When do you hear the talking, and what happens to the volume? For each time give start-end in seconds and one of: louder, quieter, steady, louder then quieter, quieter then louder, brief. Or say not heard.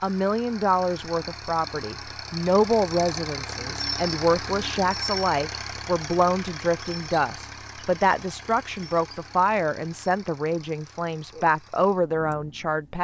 0.0-12.9 steady.